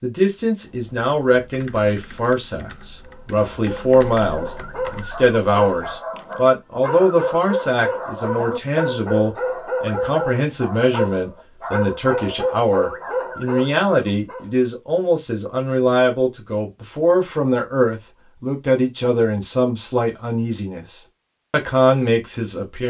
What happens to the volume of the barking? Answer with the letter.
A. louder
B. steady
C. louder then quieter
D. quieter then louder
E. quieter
A.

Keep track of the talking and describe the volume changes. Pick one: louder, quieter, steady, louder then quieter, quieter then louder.
steady.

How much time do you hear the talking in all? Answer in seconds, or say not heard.
23 s.